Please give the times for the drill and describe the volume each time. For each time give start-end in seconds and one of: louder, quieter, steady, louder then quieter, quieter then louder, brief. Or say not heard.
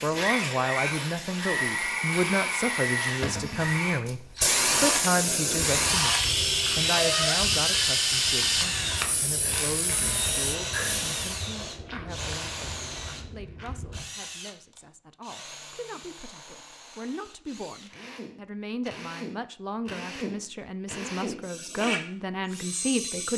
0.0-23.3 quieter then louder.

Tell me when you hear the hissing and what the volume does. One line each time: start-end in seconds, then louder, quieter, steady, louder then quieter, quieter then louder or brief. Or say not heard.
0.0-11.4 louder then quieter.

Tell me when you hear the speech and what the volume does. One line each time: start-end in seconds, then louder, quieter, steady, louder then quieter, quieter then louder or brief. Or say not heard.
0.0-23.3 quieter then louder.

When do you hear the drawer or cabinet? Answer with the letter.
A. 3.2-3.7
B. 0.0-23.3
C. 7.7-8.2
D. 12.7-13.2
A.